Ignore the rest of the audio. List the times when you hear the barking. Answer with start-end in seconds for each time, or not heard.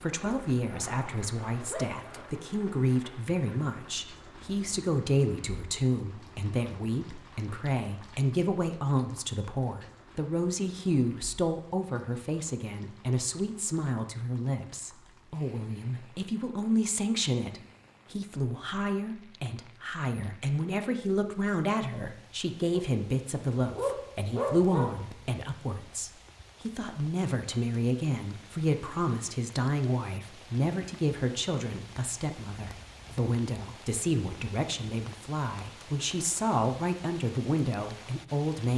0.7-2.2, 22.7-25.0.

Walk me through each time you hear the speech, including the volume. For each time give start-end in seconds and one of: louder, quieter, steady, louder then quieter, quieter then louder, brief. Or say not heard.
0.0-38.7 steady.